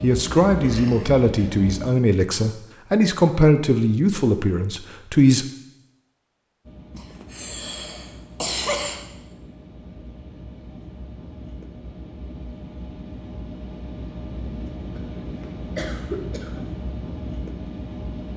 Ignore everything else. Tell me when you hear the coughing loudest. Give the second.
9 s.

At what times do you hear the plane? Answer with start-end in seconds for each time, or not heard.
0.0-1.9, 6.7-18.3.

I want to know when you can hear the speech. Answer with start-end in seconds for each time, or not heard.
0.0-5.5.